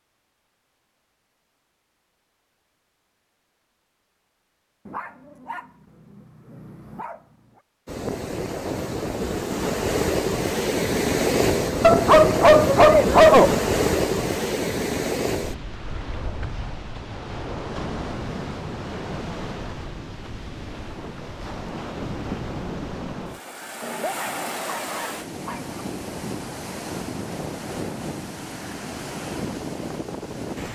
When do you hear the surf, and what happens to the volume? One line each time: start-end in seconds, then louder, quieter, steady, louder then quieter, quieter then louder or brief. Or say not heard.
7.8-30.7 quieter.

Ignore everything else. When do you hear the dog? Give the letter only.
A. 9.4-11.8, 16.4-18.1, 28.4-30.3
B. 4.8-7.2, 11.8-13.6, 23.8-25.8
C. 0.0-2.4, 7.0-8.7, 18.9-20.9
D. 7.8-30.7
B.